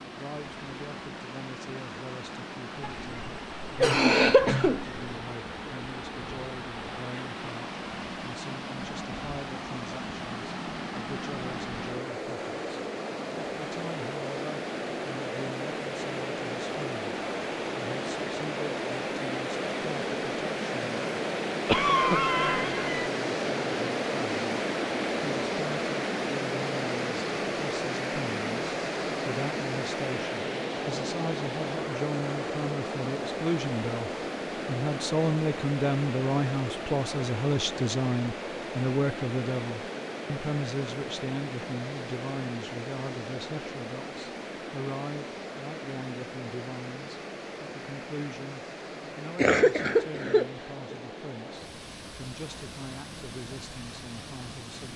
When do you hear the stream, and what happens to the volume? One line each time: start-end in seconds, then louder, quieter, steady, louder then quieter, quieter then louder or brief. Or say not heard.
0.0-54.9 louder then quieter.